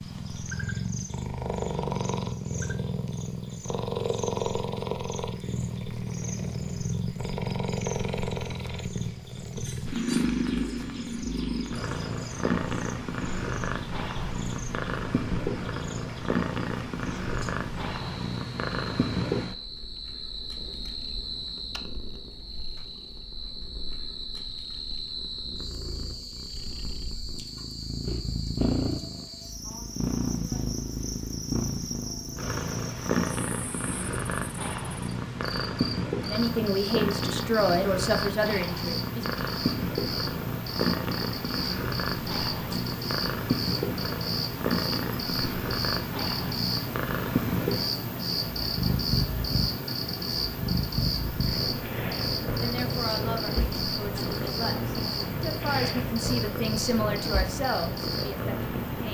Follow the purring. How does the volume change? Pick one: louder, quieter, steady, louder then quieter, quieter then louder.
steady.